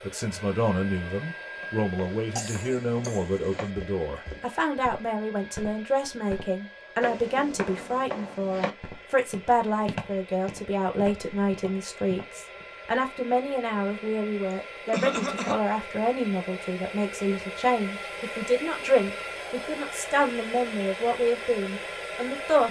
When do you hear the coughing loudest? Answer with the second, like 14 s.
15 s.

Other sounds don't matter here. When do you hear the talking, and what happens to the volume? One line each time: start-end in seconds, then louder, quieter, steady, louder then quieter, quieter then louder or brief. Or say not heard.
0.0-22.6 steady.